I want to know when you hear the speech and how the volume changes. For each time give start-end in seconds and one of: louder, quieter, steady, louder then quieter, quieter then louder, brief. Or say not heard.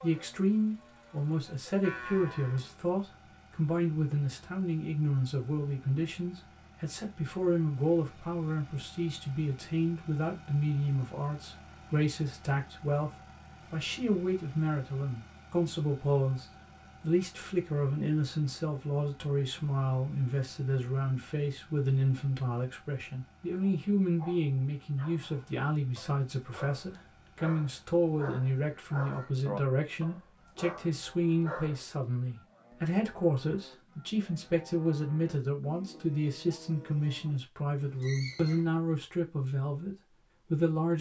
0.0-40.9 steady.